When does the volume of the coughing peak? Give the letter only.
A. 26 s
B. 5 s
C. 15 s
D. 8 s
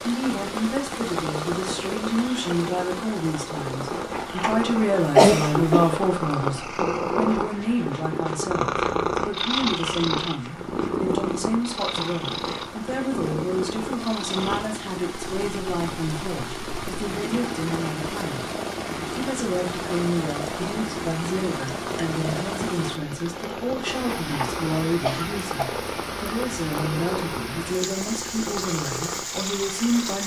B.